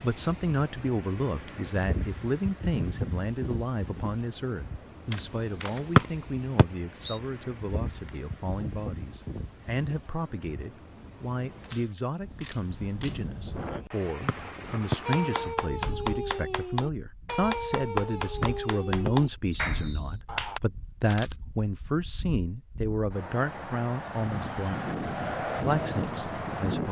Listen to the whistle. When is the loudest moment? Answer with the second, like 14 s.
6 s.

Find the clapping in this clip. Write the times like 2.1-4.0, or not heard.
15.1-20.6.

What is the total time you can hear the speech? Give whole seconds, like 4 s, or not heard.
27 s.